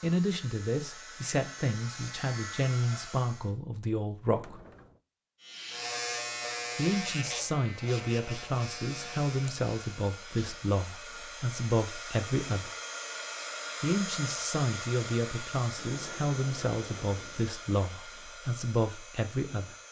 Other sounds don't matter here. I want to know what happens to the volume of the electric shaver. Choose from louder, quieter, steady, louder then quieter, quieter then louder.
quieter.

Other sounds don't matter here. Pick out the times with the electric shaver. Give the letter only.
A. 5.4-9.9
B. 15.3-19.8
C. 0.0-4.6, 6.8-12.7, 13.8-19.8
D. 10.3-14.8
A.